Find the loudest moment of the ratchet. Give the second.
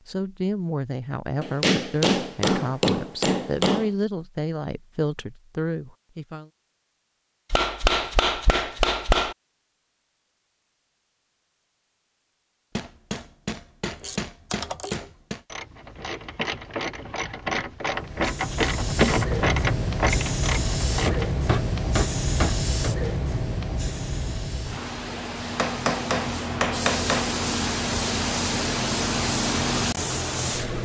19 s.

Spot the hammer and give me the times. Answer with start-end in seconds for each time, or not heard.
1.4-3.9, 7.5-9.3, 12.8-15.4, 21.1-22.9, 25.6-27.3.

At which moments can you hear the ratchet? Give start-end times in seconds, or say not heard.
13.9-21.3.